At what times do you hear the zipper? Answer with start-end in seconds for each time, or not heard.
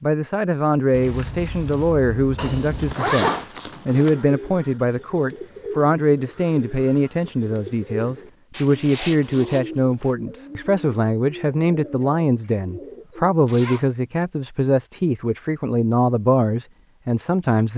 2.4-4.2, 8.5-10.2, 13.4-13.9.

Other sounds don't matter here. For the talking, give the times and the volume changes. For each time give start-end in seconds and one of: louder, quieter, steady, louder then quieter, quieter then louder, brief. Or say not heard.
0.0-17.7 steady.